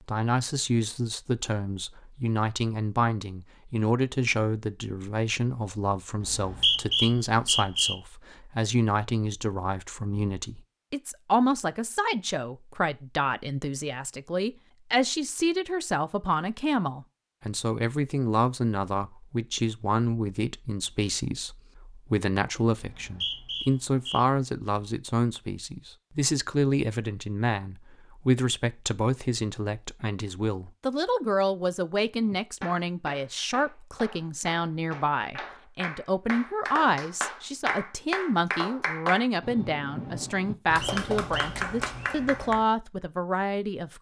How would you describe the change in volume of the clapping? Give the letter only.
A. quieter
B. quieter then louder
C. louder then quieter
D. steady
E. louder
E.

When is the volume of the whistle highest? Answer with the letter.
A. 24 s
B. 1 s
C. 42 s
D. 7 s
D.